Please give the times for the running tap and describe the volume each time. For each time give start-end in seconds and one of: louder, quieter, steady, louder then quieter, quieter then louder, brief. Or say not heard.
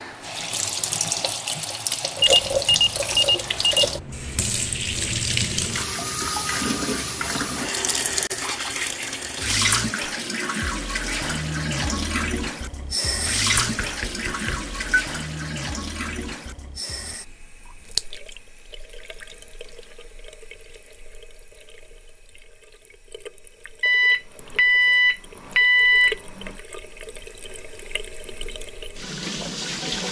0.0-30.0 quieter.